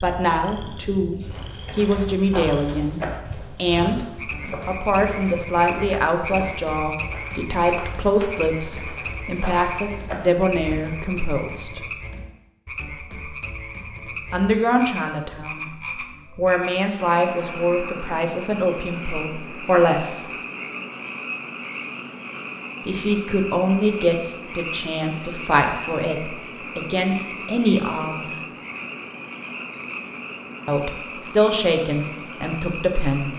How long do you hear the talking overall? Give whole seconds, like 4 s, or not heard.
25 s.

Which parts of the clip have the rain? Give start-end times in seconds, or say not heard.
not heard.